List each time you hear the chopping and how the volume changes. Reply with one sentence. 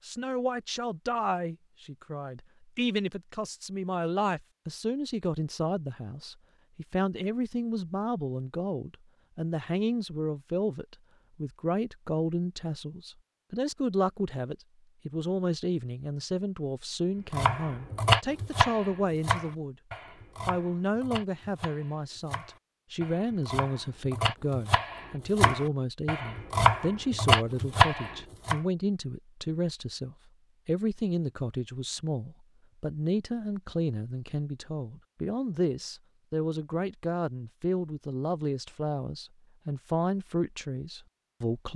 You can hear the chopping from 17.3 to 28.6 s, getting quieter then louder.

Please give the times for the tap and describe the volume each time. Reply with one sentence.
The tap can't be heard in this clip.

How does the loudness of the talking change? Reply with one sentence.
The volume of the talking stays about the same.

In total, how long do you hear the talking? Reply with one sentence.
You can hear the talking for 41 seconds altogether.